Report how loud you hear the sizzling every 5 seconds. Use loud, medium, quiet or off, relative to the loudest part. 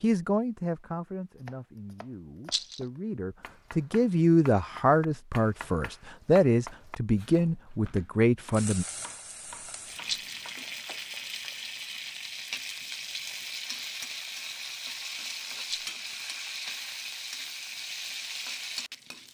off, medium, loud, loud.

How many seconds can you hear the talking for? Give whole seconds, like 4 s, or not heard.
9 s.